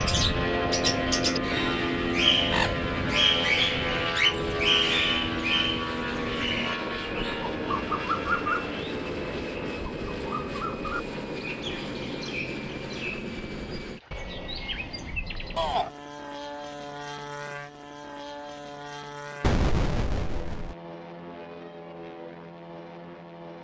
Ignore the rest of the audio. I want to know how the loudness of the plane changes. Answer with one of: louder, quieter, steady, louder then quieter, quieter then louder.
quieter.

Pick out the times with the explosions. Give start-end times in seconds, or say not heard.
19.4-20.8.